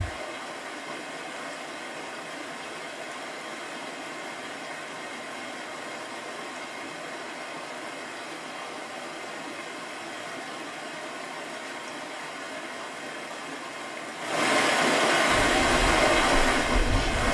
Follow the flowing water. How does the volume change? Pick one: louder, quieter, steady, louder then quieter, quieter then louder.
louder.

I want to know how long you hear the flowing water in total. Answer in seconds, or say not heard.
17 s.